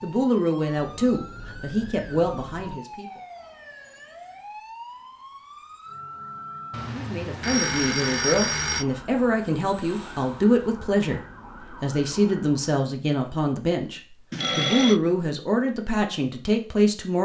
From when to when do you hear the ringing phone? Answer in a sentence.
You can hear the ringing phone from 0.8 to 2.7 s, from 6.7 to 8.8 s and from 14.3 to 15.0 s.